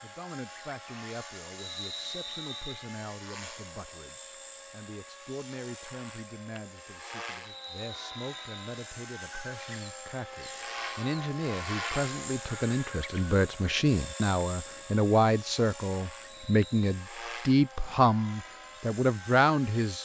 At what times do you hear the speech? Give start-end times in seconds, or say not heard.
0.0-20.0.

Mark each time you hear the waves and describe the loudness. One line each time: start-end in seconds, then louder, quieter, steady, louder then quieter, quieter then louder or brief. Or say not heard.
not heard.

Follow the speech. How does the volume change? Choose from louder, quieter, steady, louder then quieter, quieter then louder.
louder.